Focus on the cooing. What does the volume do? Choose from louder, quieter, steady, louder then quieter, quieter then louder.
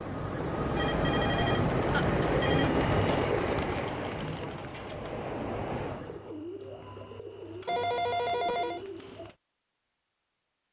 quieter.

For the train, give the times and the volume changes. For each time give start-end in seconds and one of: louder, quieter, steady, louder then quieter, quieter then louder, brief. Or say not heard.
0.0-6.3 quieter.